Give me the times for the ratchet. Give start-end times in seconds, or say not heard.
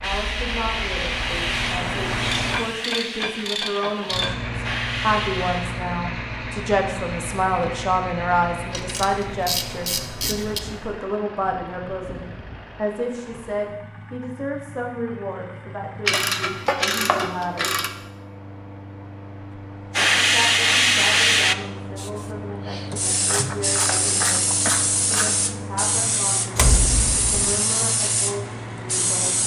2.3-4.3, 8.7-10.6, 16.1-17.9, 23.1-25.4.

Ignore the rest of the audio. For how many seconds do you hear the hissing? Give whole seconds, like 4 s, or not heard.
15 s.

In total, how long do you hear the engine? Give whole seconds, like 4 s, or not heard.
28 s.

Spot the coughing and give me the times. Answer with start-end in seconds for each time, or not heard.
not heard.